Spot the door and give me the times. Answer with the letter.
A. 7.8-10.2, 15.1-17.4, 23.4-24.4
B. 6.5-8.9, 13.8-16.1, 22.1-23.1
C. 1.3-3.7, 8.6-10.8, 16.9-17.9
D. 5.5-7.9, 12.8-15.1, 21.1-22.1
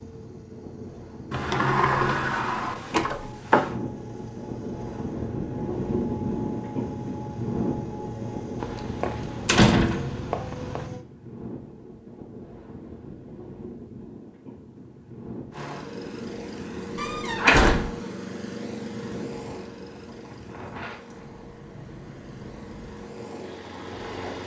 C.